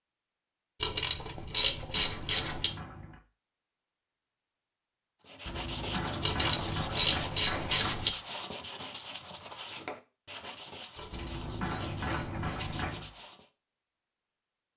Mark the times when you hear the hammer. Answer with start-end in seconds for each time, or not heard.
1.4-3.2, 5.5-8.1, 11.1-13.1.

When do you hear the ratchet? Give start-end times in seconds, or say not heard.
0.8-2.7, 6.2-8.1, 10.9-12.8.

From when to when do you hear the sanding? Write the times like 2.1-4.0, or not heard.
5.2-13.5.